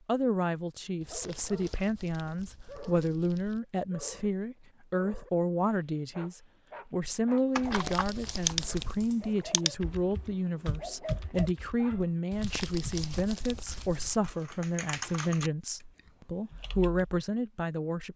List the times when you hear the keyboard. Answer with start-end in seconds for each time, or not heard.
7.5-17.1.